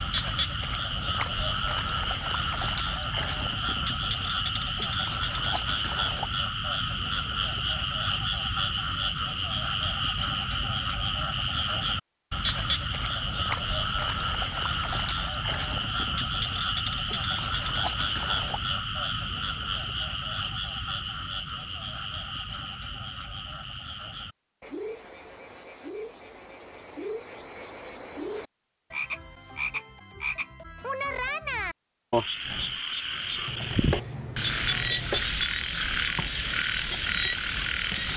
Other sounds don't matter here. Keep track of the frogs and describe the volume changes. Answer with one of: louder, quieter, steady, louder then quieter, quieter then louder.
quieter then louder.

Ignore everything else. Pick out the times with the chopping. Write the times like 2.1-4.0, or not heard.
33.5-35.3.